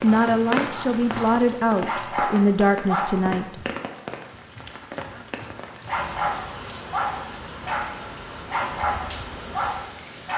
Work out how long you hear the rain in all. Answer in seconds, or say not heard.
10 s.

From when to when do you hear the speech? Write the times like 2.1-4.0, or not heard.
0.0-3.5.